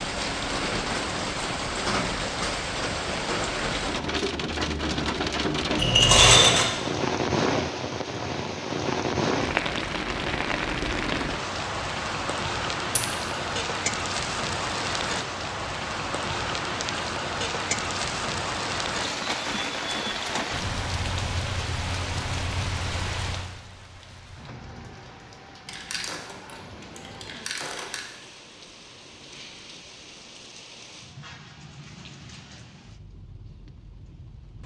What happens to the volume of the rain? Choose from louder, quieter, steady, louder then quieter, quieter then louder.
quieter.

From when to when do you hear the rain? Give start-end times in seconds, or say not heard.
0.0-34.6.